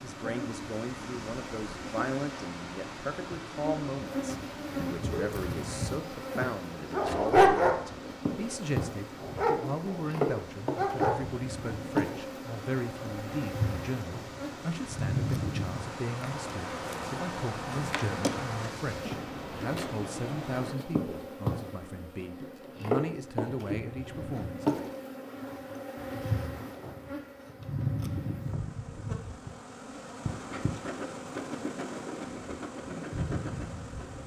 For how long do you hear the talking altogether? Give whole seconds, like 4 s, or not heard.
25 s.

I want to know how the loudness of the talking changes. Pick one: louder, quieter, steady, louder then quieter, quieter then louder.
steady.